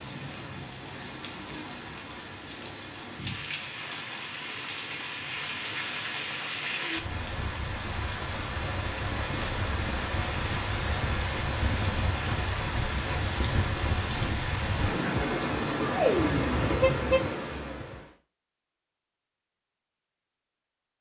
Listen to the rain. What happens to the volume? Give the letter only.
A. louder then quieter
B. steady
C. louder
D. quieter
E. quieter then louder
C.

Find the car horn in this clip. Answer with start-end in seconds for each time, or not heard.
16.1-17.3.